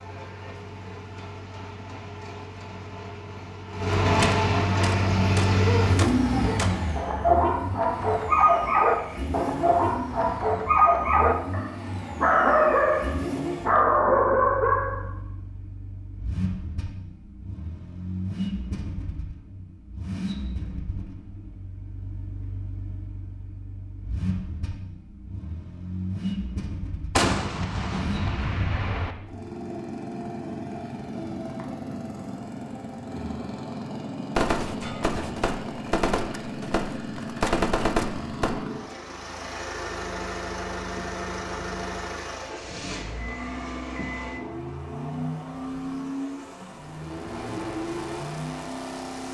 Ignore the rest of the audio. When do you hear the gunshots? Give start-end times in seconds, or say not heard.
4.2-6.8, 27.1-29.1, 34.4-38.5.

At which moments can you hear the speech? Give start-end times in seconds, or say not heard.
not heard.